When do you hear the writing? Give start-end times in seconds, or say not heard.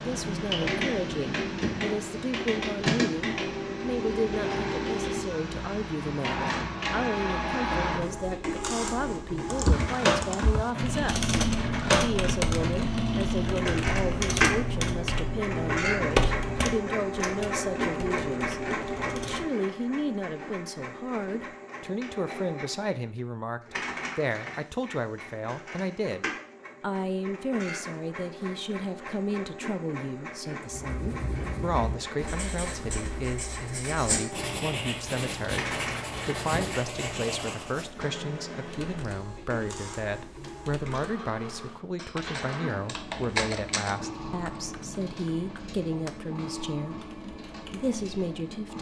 30.6-37.9.